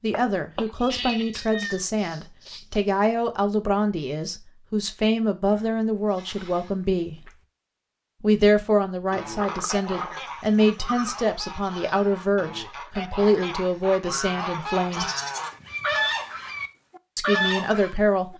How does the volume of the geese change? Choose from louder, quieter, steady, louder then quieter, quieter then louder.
louder.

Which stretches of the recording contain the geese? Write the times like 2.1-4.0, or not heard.
9.1-18.3.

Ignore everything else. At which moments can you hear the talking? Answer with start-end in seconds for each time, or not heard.
0.0-7.3, 8.2-15.1, 17.1-18.3.